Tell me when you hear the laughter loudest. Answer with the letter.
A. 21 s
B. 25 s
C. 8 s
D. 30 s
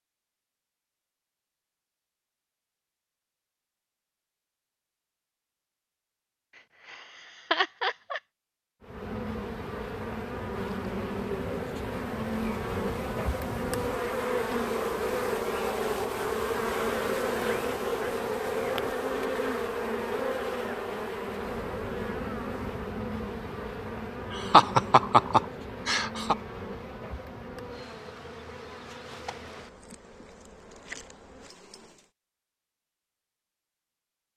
B.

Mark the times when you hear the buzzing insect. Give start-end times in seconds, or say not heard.
8.8-32.1.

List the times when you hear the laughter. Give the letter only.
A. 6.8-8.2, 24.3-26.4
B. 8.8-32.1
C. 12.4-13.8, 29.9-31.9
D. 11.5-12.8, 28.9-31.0
A.